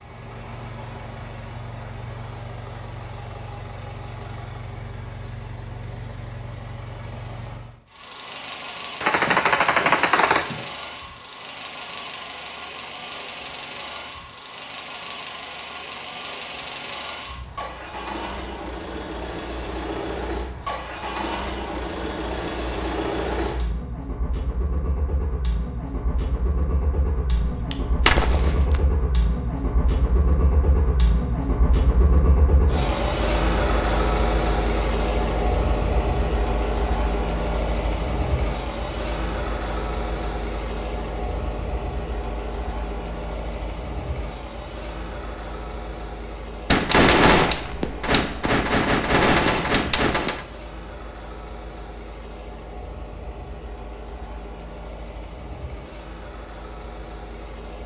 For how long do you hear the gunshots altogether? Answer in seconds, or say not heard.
7 s.